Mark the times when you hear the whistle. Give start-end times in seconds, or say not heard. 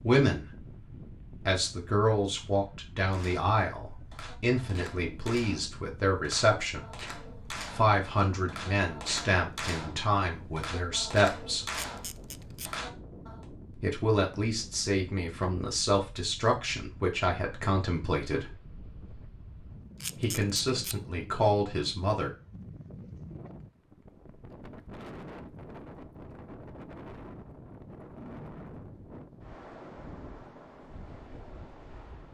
not heard.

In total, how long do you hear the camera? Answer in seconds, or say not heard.
2 s.